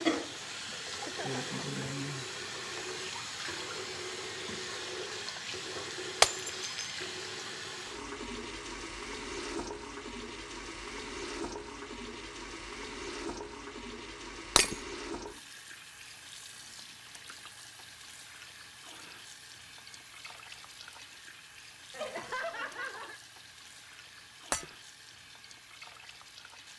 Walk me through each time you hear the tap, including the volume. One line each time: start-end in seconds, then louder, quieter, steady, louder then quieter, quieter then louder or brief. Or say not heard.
0.0-26.7 quieter.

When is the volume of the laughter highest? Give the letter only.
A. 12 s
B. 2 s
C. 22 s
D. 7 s
C.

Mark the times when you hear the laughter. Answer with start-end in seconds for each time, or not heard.
0.8-1.4, 21.9-23.2.